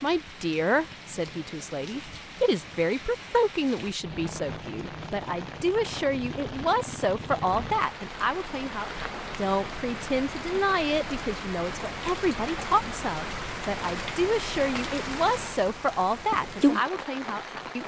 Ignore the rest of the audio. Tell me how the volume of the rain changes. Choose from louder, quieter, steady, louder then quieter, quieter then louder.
louder.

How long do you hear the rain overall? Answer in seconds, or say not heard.
18 s.